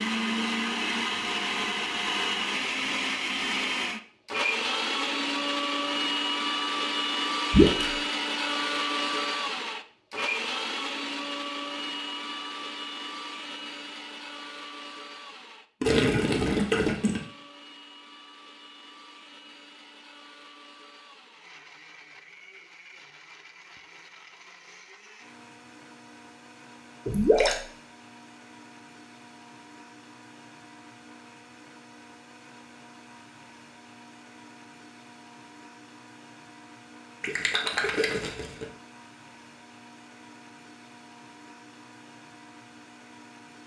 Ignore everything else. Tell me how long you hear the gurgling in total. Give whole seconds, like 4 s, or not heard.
4 s.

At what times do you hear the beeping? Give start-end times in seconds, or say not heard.
not heard.